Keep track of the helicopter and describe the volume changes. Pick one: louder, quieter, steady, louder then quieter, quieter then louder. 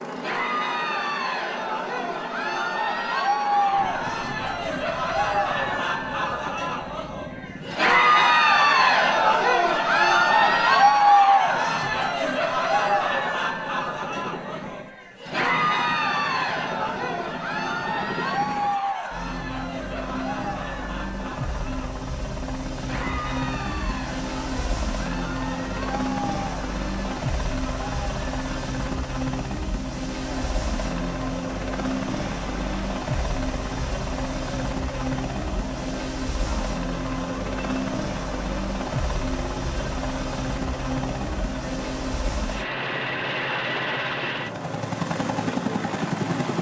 louder.